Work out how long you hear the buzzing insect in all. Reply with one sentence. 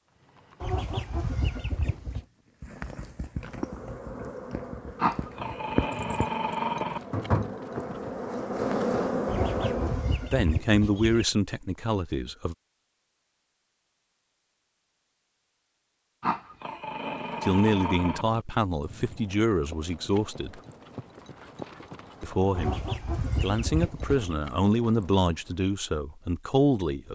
The buzzing insect can be heard for 7 seconds in total.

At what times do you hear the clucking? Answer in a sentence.
You can hear the clucking from 0.6 to 2.2 s, from 9.2 to 11.2 s and from 22.6 to 24.4 s.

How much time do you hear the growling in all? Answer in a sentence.
You can hear the growling for 4 seconds altogether.